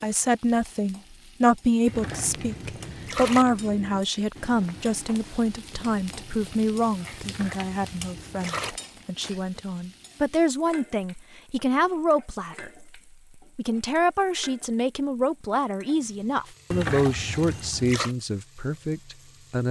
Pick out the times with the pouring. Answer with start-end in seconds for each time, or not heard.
1.9-3.5, 7.2-8.8, 16.7-18.1.